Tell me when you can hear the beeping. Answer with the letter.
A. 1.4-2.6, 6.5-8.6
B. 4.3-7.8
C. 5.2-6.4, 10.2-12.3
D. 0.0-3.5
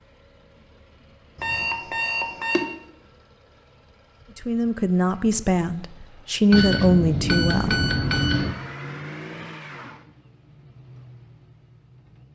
A.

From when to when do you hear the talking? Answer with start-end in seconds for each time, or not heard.
4.3-7.8.